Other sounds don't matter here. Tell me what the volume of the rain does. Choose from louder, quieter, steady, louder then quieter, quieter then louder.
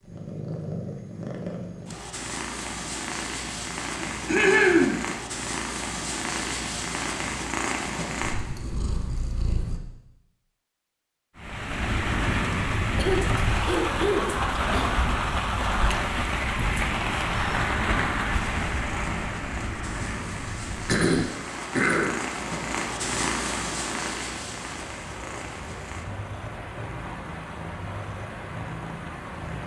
quieter.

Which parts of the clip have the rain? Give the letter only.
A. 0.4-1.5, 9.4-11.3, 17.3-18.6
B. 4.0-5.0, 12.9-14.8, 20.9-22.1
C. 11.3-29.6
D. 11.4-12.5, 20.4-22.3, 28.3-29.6
C.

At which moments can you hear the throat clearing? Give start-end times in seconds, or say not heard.
4.0-5.0, 12.9-14.8, 20.9-22.1.